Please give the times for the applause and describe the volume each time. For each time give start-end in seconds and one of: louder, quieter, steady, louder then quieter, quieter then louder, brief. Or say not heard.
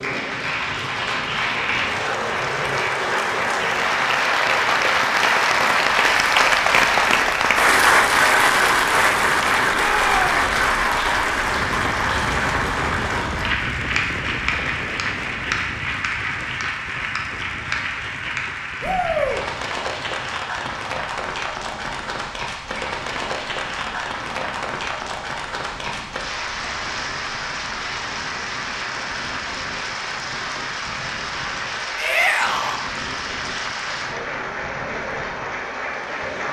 0.0-36.4 quieter.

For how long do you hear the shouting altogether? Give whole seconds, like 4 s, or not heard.
2 s.